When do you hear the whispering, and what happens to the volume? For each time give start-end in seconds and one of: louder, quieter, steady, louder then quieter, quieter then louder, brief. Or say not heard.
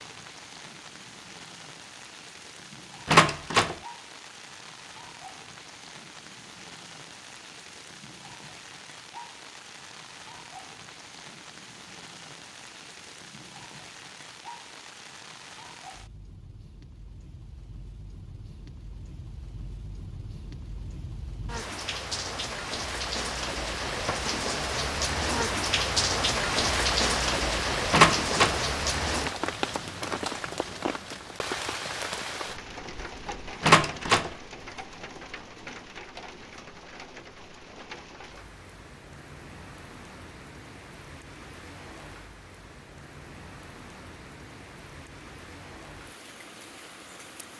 not heard.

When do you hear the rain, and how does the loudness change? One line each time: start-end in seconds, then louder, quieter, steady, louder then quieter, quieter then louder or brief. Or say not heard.
0.0-47.5 louder then quieter.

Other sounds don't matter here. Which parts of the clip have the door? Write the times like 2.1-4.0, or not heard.
3.0-3.8, 27.9-28.6, 33.6-34.3.